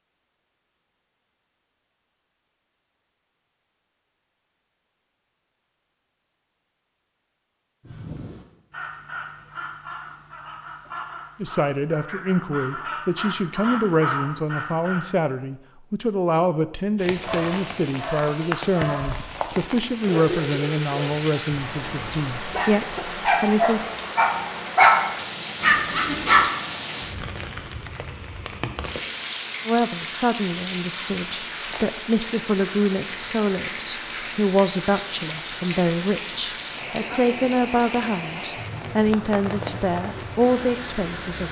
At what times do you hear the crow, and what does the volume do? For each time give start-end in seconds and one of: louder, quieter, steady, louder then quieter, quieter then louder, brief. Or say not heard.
7.8-15.3 louder.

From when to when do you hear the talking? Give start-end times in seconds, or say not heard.
11.4-23.9, 29.6-41.4.